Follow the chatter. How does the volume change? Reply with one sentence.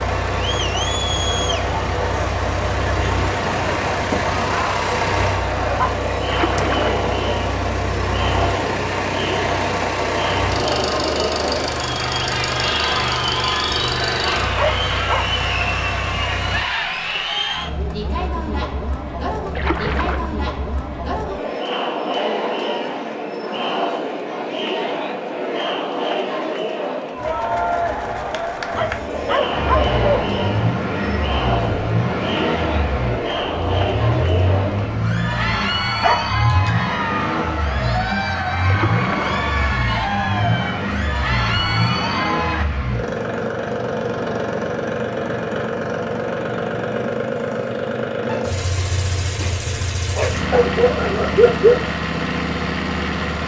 The loudness of the chatter stays about the same.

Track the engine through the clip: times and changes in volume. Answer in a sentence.
You can hear the engine from 0.0 to 16.6 s, at a steady volume; and from 29.5 to 53.4 s, at a steady volume.